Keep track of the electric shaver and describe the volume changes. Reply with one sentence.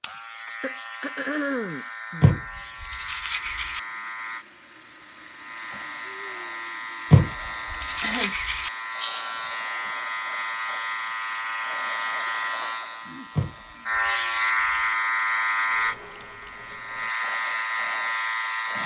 The volume of the electric shaver goes up.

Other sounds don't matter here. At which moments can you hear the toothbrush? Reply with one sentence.
The toothbrush can be heard from 2.2 to 3.8 s, from 7.1 to 8.7 s and from 13.3 to 14.9 s.